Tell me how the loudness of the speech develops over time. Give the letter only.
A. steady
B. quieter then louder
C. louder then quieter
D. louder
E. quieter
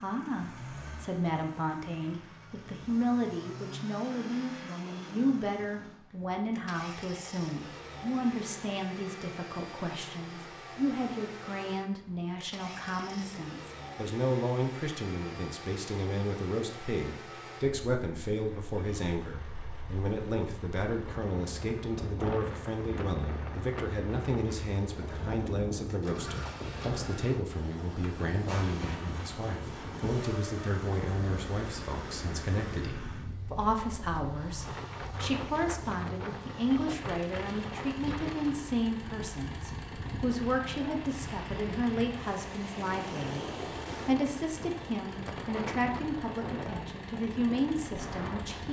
A.